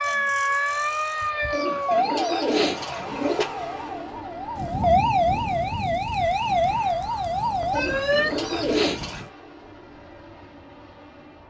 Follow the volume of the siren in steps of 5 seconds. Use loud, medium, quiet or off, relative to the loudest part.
loud, loud, off.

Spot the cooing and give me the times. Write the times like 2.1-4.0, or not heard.
1.5-3.5, 7.7-9.2.